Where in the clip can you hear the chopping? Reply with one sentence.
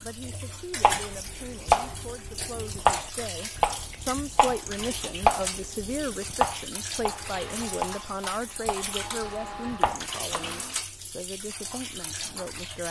The chopping can be heard from 0.8 to 10.6 s.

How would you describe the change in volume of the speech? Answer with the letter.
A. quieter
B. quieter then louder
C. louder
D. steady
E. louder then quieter
E.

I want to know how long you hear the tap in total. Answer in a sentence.
The tap can be heard for 13 seconds in total.